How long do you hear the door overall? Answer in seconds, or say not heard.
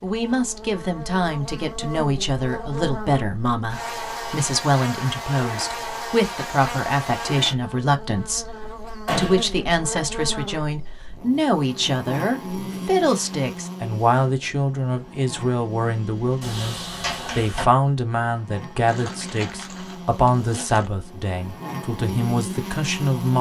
2 s.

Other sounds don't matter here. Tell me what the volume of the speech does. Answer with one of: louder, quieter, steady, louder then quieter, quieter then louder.
steady.